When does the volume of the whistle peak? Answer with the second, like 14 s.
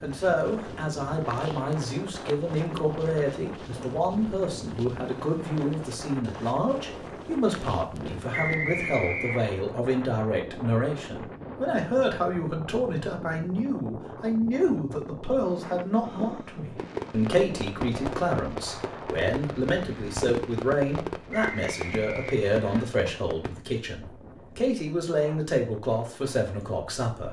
9 s.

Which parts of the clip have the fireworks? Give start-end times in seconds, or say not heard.
16.8-23.6.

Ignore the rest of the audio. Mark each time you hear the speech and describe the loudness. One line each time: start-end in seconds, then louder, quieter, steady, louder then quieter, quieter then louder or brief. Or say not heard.
0.0-27.2 steady.